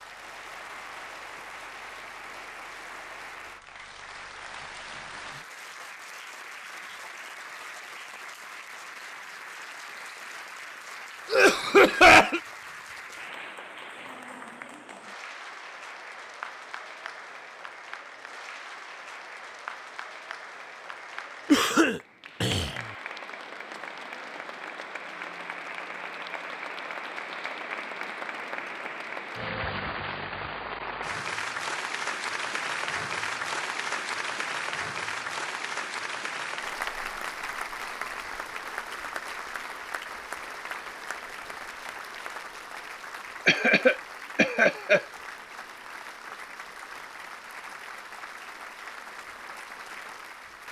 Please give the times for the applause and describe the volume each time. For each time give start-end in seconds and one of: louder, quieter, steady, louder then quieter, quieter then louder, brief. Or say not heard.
0.0-50.6 louder then quieter.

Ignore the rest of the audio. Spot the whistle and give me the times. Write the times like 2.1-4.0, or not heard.
not heard.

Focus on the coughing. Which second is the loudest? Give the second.
12 s.